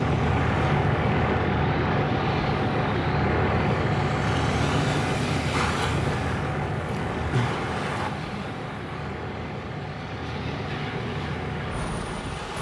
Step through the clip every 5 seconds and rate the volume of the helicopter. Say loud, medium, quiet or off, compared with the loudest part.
loud, medium, medium.